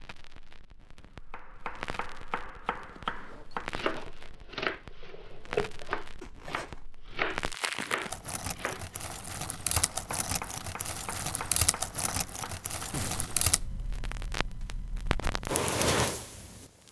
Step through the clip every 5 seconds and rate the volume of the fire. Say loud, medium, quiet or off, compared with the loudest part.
quiet, medium, medium, loud.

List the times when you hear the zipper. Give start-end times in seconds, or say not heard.
2.8-4.1, 6.2-6.8, 12.9-13.5.